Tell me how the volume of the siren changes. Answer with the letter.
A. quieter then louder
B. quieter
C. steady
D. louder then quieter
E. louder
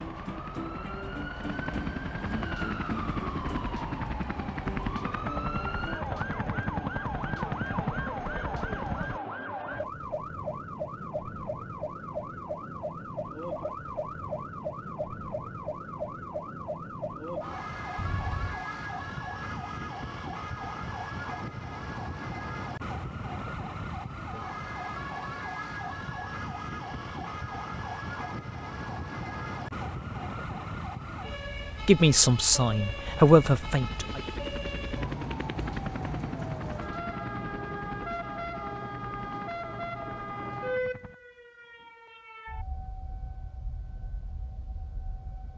C.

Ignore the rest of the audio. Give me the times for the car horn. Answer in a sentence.
You can hear the car horn from 17.9 to 18.6 s.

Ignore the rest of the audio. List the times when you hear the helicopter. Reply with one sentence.
You can hear the helicopter from 0.1 to 9.2 s and from 32.9 to 41.1 s.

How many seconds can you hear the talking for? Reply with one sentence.
You can hear the talking for 2 seconds altogether.